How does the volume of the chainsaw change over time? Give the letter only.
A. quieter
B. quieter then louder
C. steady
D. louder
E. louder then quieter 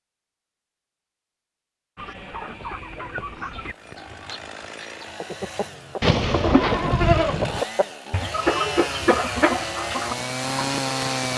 D.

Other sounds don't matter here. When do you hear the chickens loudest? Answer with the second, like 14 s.
9 s.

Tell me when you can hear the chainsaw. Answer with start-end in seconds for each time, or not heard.
3.5-11.3.